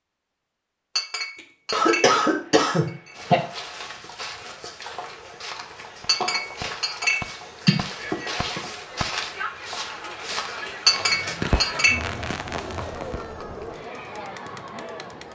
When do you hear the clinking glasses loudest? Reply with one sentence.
The volume of the clinking glasses peaks at 11 seconds.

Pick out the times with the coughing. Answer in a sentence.
You can hear the coughing from 1.4 to 3.4 s and from 7.7 to 8.6 s.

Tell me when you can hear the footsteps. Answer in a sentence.
You can hear the footsteps from 3.1 to 11.3 s.